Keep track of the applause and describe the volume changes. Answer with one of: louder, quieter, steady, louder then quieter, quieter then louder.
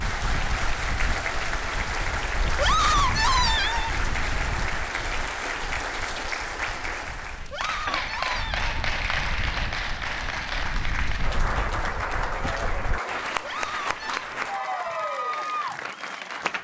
steady.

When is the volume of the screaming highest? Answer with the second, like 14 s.
3 s.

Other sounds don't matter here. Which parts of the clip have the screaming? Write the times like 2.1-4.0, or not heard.
2.5-4.0, 7.5-8.7, 13.4-14.2.